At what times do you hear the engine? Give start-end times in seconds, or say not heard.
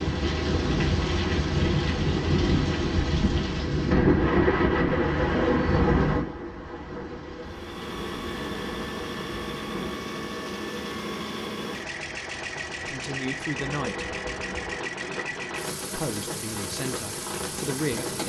7.4-18.2.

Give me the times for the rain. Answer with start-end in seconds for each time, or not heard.
0.0-18.2.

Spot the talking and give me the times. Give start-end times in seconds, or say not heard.
12.8-14.1, 15.9-18.2.